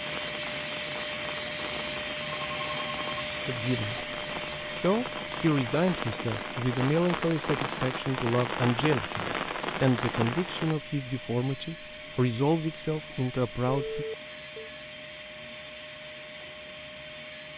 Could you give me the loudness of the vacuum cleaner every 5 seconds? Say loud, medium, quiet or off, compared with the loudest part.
loud, medium, medium, medium.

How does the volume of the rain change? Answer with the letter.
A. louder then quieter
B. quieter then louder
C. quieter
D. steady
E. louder
E.